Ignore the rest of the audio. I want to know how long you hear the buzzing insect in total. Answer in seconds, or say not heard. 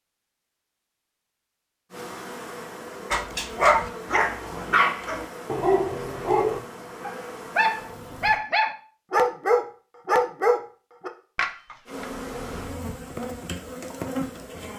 9 s.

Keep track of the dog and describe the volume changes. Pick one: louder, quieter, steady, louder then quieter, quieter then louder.
steady.